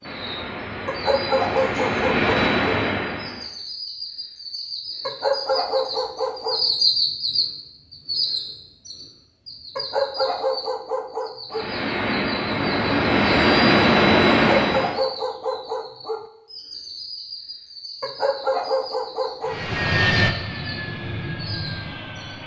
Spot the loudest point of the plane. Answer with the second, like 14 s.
14 s.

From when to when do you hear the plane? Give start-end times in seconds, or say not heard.
0.0-3.5, 11.5-15.0, 19.4-22.4.